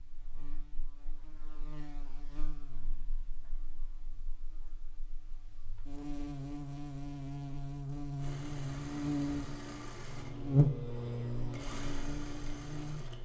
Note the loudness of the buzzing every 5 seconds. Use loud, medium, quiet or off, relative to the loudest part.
quiet, medium, loud.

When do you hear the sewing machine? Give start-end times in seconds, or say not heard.
8.2-13.1.